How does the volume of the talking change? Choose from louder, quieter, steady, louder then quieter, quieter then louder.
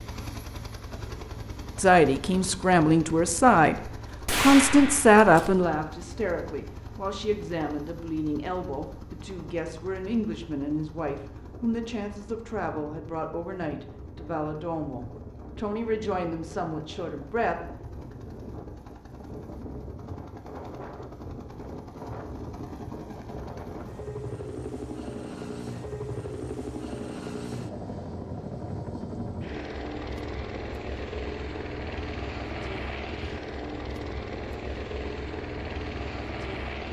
quieter.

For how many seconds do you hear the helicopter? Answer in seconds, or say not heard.
37 s.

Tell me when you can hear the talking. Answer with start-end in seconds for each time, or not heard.
1.8-17.7.